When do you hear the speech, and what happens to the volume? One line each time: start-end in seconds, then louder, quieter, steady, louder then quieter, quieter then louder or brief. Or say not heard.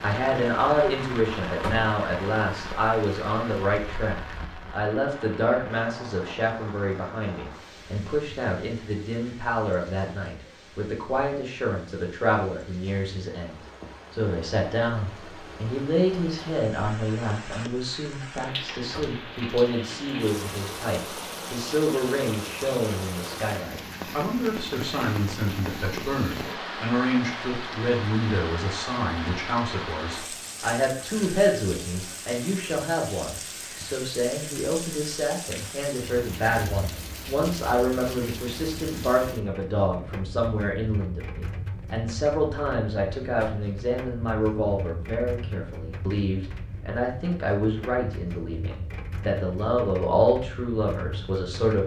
0.0-51.8 steady.